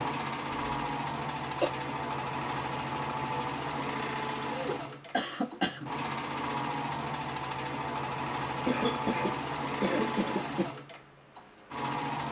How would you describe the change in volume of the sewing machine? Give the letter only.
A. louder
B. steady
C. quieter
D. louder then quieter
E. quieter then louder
B.